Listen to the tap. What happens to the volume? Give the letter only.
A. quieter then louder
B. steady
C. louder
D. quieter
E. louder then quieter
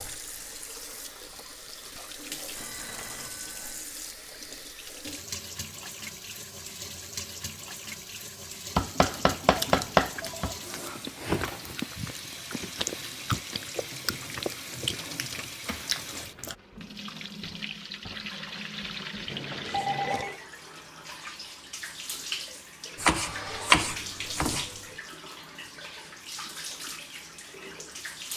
B.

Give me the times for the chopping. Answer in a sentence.
You can hear the chopping from 8.8 to 10.6 s and from 22.9 to 24.8 s.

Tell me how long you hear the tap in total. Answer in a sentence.
You can hear the tap for 28 seconds altogether.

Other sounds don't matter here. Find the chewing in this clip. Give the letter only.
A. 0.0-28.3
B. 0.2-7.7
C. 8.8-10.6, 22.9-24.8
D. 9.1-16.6
D.